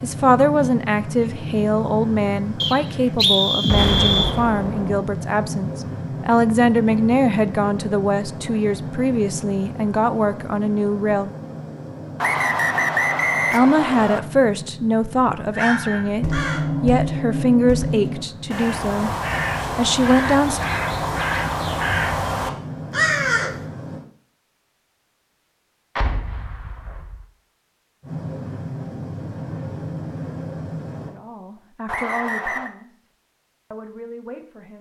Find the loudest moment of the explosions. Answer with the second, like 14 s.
4 s.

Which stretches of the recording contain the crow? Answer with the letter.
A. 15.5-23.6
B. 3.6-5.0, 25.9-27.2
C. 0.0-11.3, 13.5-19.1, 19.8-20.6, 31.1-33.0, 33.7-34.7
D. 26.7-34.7
A.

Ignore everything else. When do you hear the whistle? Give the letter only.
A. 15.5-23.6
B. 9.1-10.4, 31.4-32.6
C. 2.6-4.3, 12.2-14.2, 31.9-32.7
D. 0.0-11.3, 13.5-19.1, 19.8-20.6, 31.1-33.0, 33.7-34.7
C.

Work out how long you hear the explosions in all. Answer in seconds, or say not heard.
3 s.